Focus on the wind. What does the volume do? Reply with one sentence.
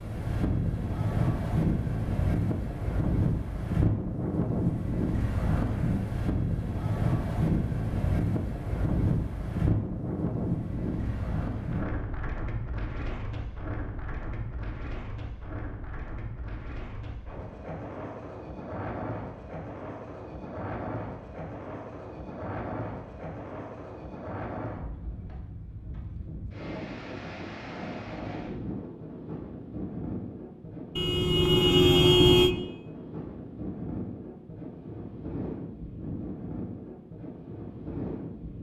The loudness of the wind goes down.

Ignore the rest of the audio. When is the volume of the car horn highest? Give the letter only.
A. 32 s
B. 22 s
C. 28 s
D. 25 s
A.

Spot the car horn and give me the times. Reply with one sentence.
The car horn can be heard from 30.9 to 32.5 s.